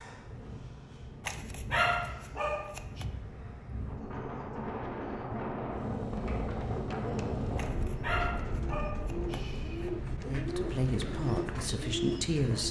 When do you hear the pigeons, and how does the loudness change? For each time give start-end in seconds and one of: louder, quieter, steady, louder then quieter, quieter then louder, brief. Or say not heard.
6.7-12.6 louder.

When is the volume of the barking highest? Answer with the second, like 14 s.
2 s.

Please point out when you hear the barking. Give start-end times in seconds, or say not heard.
1.2-3.0, 7.5-9.9.